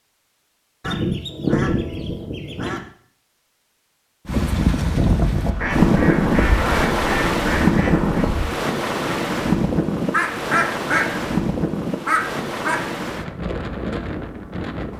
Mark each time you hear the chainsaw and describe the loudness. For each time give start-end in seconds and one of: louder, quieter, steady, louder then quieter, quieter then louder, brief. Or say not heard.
not heard.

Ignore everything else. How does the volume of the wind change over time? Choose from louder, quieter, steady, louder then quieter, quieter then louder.
quieter.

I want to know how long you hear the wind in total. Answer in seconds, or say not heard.
11 s.